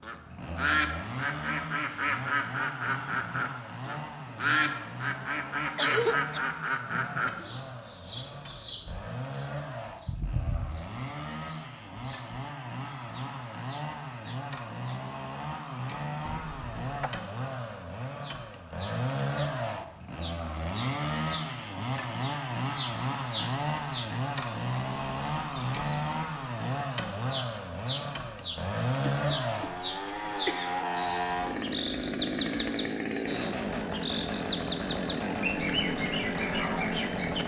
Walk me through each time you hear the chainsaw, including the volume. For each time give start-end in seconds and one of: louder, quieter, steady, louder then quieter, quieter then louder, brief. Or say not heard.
0.0-37.4 louder.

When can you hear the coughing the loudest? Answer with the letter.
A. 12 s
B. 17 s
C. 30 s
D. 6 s
D.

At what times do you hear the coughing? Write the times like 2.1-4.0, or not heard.
5.8-6.4, 16.2-17.2, 29.0-30.8.